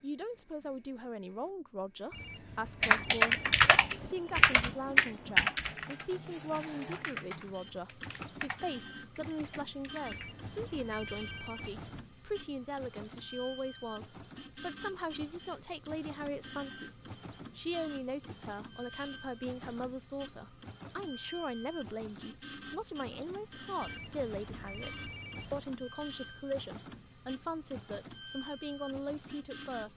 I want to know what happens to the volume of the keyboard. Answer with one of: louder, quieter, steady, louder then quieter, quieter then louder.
quieter.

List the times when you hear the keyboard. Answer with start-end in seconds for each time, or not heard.
2.8-10.3.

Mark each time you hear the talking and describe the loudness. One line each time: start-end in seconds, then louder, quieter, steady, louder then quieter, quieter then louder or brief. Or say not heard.
0.0-29.9 steady.